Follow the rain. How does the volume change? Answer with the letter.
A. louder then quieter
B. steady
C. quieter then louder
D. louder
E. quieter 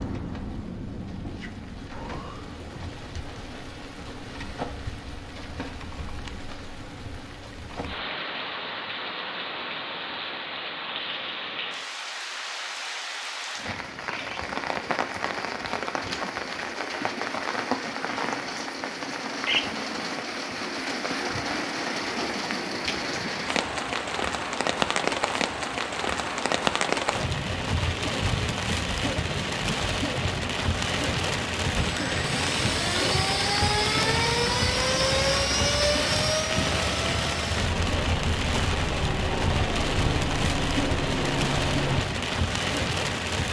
D.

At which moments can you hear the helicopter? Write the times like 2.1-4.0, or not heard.
31.8-42.0.